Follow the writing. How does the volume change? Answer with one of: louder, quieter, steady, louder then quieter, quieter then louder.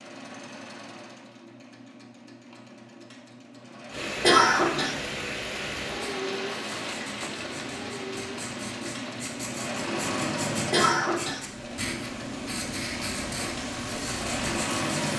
louder.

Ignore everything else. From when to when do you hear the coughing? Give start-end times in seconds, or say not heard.
4.2-5.0, 10.7-11.4.